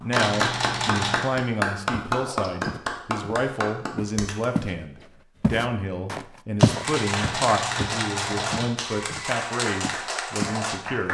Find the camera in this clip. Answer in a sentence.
The camera can be heard from 0.1 to 1.3 s and from 6.8 to 8.7 s.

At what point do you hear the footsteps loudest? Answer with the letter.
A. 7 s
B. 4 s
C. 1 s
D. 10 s
A.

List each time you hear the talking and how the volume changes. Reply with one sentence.
You can hear the talking from 0.0 to 11.0 s, at a steady volume.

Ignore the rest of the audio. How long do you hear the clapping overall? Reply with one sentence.
You can hear the clapping for 9 seconds altogether.